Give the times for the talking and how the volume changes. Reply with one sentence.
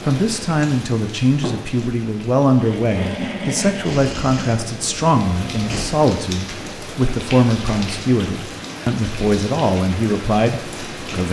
You can hear the talking from 0.1 to 11.2 s, at a steady volume.